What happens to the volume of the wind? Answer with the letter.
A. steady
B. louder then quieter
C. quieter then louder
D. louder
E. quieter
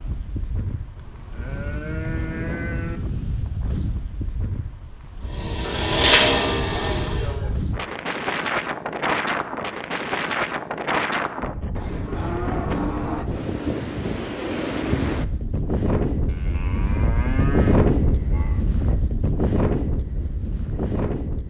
D.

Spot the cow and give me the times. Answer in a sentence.
You can hear the cow from 0.9 to 3.0 s, from 5.6 to 7.5 s, from 11.8 to 13.3 s and from 16.2 to 18.6 s.